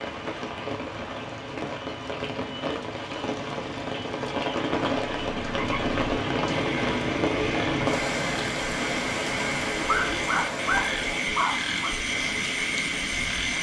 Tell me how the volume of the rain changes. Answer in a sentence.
The loudness of the rain goes up, then down.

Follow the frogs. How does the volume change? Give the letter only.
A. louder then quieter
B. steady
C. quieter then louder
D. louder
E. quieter
D.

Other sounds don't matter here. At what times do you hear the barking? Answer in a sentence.
The barking can be heard from 9.8 to 11.9 s.